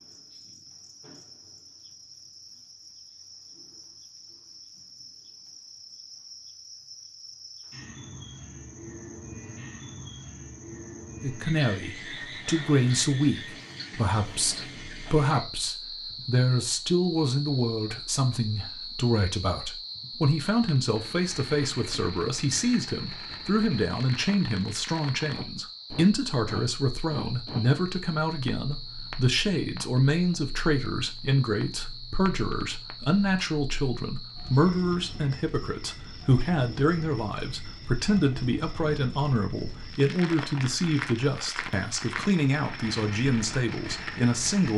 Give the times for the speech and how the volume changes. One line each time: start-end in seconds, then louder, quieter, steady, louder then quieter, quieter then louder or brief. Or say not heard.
11.2-44.7 steady.